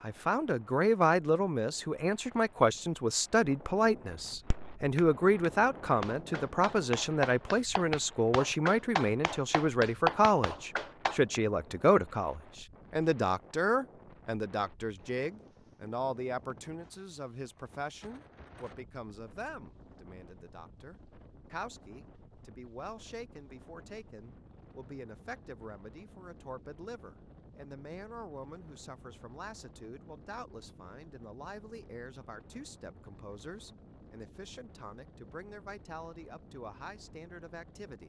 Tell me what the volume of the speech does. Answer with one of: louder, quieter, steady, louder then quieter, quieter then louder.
quieter.